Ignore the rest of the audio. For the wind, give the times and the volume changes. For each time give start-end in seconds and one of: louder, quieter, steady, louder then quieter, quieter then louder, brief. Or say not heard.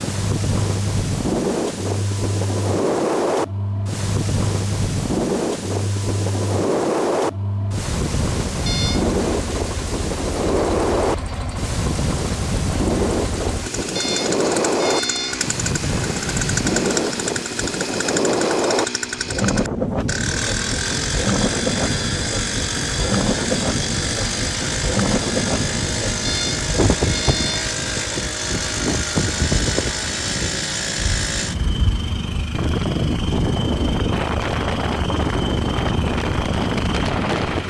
0.0-37.6 steady.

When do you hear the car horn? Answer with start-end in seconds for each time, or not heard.
8.7-9.1, 13.9-15.4, 26.2-27.8.